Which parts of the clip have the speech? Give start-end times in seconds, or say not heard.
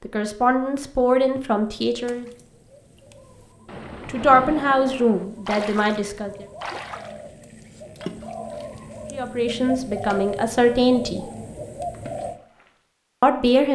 0.0-2.2, 4.0-6.5, 9.1-11.2, 13.2-13.6.